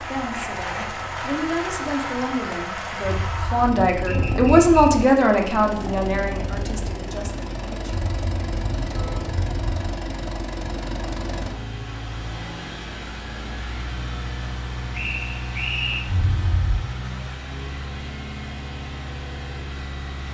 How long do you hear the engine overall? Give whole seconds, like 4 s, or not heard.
20 s.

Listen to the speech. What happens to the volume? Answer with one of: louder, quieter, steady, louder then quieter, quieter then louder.
louder then quieter.